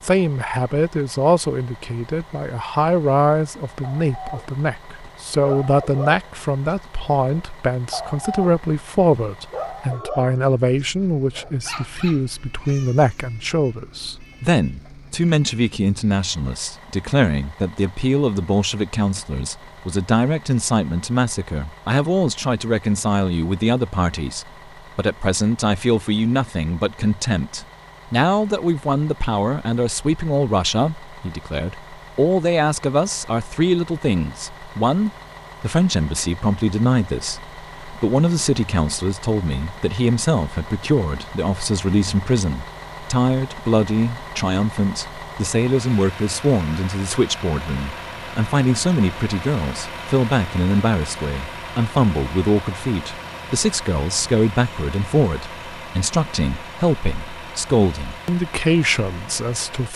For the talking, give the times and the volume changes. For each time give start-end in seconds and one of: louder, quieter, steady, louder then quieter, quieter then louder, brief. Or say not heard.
0.0-59.9 steady.